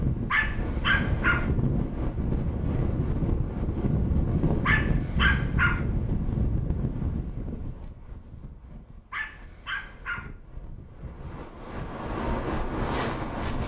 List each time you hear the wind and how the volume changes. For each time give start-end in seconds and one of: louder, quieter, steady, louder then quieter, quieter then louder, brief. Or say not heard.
0.0-13.6 quieter then louder.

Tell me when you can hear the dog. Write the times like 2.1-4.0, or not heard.
0.3-1.4, 4.7-5.8, 9.1-10.3.